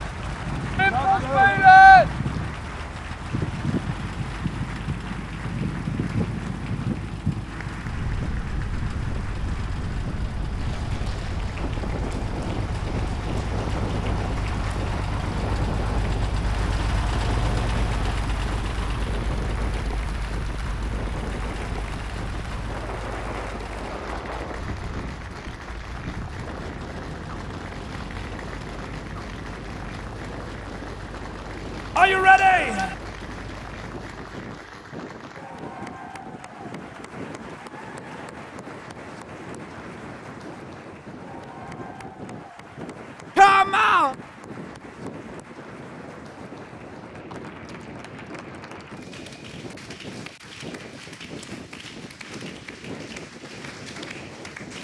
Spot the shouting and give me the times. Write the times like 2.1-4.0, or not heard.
0.8-2.0, 31.9-33.0, 43.4-44.1.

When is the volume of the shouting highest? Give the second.
2 s.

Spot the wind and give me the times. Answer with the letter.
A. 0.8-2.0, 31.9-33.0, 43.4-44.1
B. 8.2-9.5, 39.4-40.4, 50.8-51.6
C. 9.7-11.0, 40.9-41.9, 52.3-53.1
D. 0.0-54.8
D.